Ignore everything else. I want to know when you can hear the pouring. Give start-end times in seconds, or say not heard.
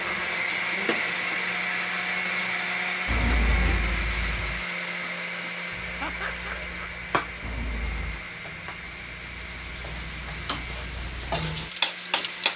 3.0-4.7, 7.4-8.2.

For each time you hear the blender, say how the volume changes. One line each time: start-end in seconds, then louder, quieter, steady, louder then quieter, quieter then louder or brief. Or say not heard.
0.0-12.5 quieter.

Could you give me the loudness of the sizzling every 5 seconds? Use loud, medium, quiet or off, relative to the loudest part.
medium, medium, loud.